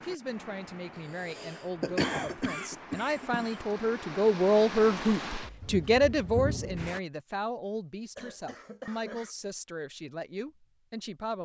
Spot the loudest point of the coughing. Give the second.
2 s.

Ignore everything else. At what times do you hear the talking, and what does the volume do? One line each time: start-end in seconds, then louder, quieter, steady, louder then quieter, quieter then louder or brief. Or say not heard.
0.0-11.4 louder then quieter.